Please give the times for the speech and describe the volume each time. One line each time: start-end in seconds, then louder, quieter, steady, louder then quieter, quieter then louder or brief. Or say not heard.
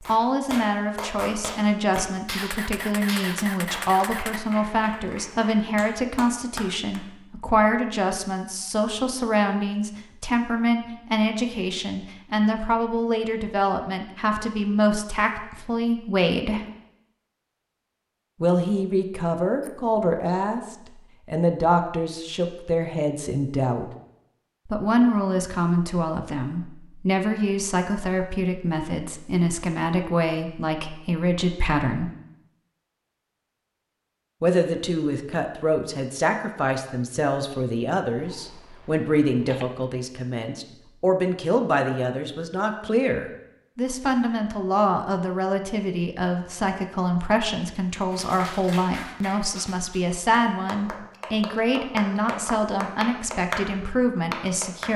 0.0-16.6 steady
18.4-23.9 steady
24.6-32.1 steady
34.4-54.9 steady.